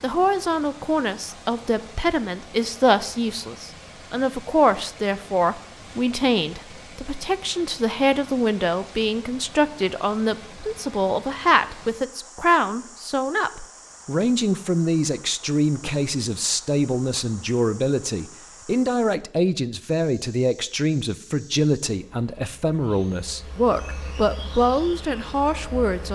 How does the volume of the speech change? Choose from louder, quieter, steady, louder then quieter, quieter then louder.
steady.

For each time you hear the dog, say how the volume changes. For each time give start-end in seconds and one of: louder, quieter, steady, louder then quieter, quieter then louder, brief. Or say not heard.
not heard.